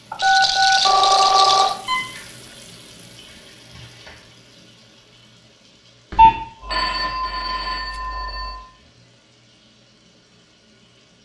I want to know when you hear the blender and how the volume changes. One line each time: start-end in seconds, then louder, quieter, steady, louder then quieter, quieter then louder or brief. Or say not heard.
not heard.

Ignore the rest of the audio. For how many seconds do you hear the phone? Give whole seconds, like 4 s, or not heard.
4 s.